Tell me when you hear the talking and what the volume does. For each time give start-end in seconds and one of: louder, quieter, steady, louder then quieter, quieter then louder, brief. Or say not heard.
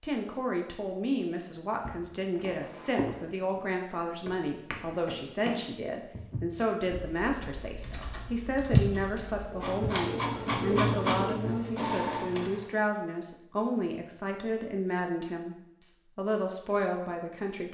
0.0-17.7 steady.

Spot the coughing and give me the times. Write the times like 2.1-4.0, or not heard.
not heard.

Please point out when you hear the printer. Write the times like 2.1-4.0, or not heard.
9.4-12.7.